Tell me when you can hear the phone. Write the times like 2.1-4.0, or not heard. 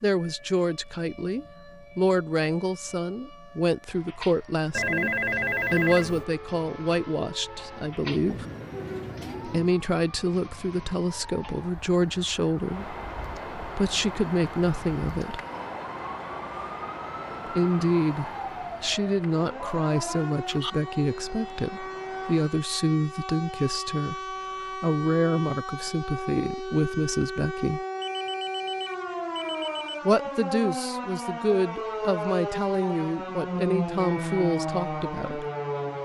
4.7-6.2, 19.6-20.7, 28.0-30.0.